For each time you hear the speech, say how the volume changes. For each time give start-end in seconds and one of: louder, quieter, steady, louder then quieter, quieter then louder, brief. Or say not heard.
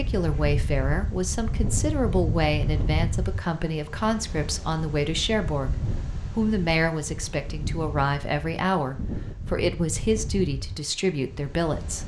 0.0-5.8 steady
6.3-12.0 steady.